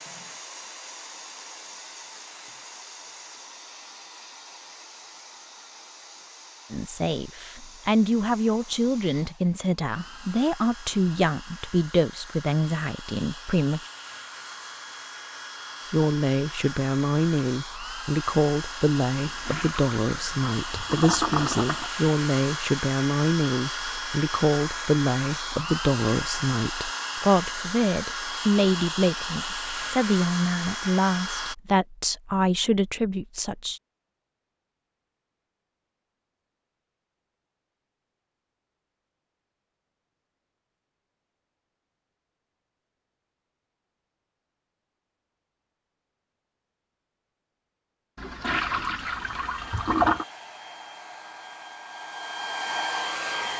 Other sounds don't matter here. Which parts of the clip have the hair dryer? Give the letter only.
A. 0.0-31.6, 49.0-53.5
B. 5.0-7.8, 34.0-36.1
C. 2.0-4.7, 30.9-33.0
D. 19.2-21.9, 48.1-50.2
A.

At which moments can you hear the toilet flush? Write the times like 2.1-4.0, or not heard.
19.2-21.9, 48.1-50.2.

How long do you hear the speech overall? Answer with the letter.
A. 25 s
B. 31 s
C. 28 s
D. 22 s
A.